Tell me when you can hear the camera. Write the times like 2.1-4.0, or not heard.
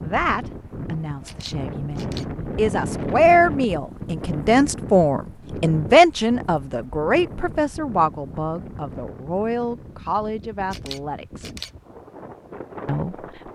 1.2-2.2, 10.7-11.7.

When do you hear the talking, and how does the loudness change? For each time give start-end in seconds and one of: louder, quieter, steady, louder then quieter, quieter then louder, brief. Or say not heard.
0.0-11.5 louder then quieter
12.8-13.5 brief.